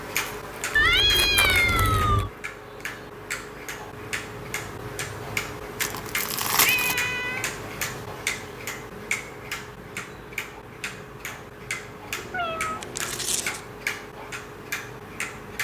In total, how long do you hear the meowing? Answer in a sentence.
The meowing can be heard for 4 seconds in total.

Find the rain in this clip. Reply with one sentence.
The rain can't be heard in this clip.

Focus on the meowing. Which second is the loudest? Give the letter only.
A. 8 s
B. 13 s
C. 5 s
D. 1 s
D.